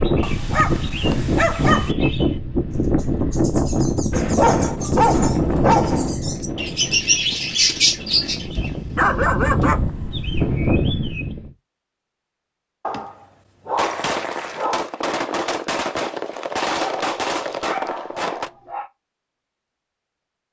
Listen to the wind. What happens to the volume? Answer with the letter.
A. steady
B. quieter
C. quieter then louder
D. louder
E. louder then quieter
C.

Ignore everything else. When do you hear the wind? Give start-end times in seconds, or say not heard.
0.0-11.5.